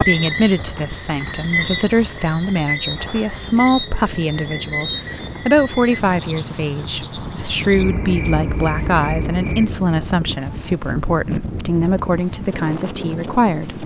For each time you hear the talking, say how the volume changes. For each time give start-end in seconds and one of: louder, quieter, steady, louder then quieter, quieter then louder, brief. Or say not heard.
0.1-13.8 steady.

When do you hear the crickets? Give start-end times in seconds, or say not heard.
0.0-13.8.